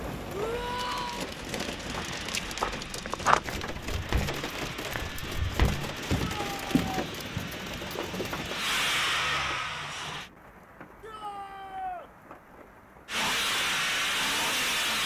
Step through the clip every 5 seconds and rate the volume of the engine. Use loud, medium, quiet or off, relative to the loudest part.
quiet, medium, loud.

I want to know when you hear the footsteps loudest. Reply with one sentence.
The loudest moment of the footsteps is at 3 seconds.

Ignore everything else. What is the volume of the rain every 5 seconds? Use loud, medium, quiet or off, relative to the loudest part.
loud, loud, quiet.